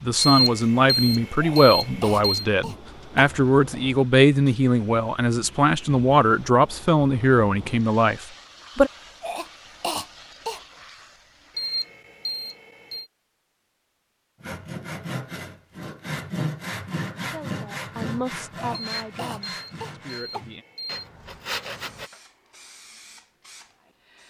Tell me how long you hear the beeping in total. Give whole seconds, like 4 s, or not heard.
6 s.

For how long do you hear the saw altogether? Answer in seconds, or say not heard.
8 s.